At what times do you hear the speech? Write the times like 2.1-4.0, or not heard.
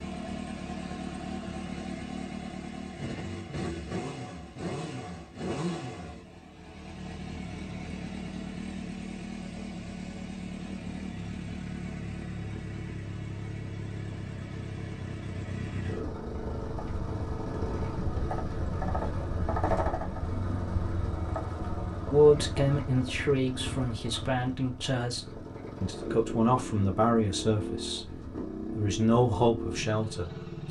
22.1-28.1, 28.8-30.6.